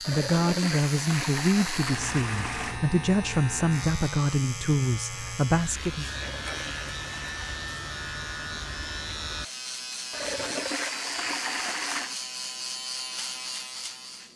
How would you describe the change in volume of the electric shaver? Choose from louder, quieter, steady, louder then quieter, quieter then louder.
steady.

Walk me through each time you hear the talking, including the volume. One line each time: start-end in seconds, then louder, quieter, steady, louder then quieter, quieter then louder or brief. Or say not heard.
0.1-6.1 steady.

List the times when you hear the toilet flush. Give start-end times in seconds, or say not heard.
0.0-2.8, 6.3-7.5, 10.1-12.2.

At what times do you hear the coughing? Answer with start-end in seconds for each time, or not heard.
not heard.